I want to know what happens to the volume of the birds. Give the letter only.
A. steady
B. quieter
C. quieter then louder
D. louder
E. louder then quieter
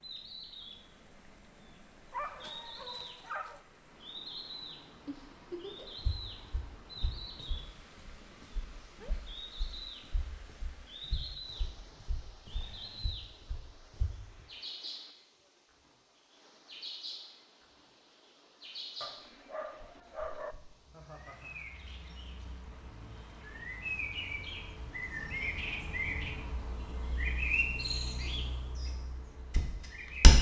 D.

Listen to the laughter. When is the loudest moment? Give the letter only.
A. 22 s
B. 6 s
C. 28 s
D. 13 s
B.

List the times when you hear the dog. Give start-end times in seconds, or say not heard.
2.1-3.6, 19.0-20.6.